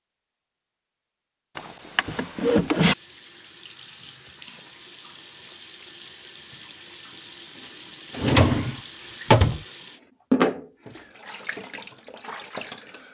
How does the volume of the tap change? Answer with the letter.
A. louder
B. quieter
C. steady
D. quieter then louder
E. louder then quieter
E.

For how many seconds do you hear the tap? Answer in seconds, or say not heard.
10 s.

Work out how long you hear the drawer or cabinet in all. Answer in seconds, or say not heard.
3 s.